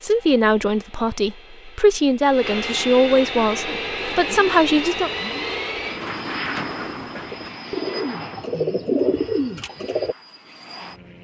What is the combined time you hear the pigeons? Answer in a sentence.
The pigeons can be heard for 7 seconds in total.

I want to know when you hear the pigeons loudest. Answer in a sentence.
The loudest moment of the pigeons is at 9 seconds.